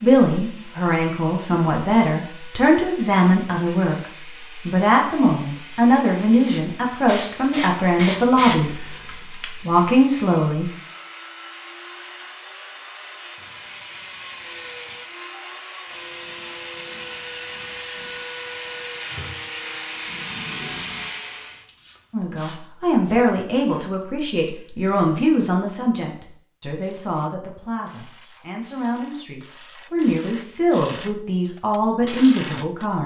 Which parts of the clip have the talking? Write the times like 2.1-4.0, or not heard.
0.0-10.7, 22.1-33.0.